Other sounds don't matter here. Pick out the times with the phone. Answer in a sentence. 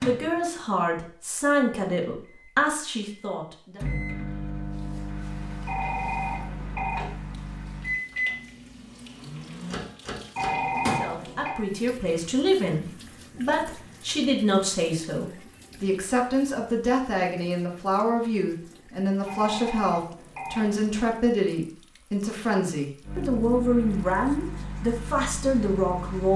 You can hear the phone from 5.7 to 7.1 s, from 10.3 to 11.6 s and from 19.2 to 21.1 s.